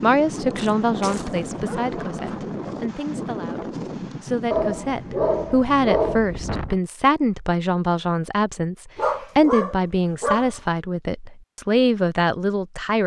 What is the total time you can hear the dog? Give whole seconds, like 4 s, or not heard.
5 s.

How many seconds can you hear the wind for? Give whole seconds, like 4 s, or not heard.
7 s.